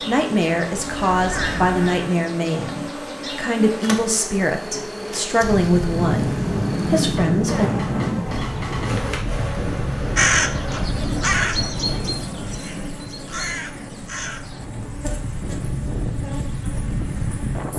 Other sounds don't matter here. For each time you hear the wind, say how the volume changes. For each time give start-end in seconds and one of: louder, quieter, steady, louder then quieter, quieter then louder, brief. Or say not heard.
5.4-17.7 quieter then louder.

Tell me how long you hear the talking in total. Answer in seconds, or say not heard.
8 s.